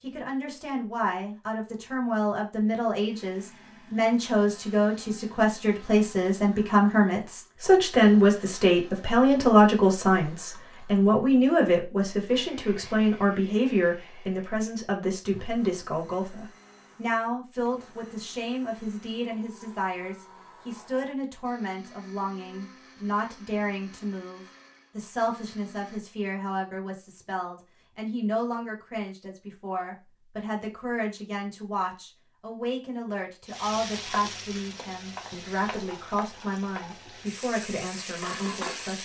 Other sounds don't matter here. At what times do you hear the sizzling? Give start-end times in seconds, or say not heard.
33.5-38.9.